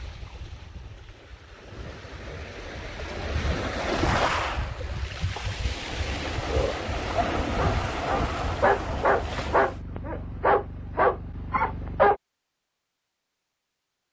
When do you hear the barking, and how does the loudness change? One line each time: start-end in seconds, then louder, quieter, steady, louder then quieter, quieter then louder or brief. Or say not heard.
6.5-12.2 louder.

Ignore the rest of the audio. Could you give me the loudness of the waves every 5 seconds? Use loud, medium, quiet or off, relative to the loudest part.
loud, loud, off.